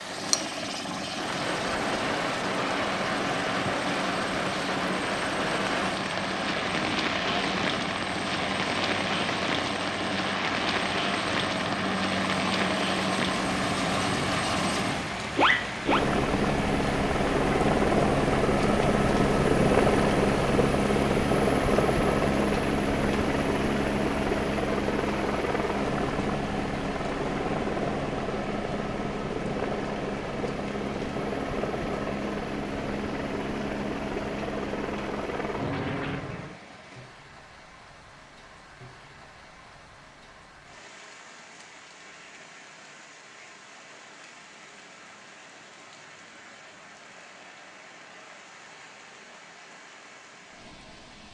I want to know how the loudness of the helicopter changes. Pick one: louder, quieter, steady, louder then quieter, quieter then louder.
louder then quieter.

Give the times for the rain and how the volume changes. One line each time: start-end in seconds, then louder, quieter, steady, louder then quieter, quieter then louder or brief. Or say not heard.
0.0-51.2 quieter.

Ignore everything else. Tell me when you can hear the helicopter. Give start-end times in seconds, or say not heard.
0.0-36.6.